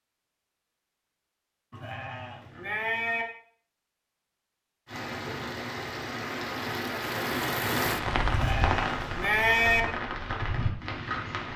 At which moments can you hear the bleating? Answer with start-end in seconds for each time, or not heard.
1.7-3.2, 8.3-9.8.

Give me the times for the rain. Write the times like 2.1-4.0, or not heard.
4.8-11.5.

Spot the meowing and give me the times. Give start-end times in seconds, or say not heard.
not heard.